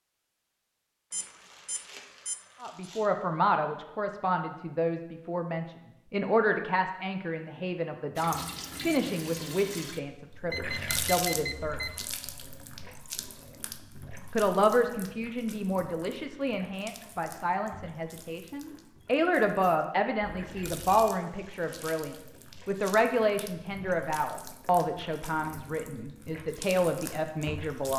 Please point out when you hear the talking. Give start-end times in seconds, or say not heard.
2.6-11.8, 14.3-27.9.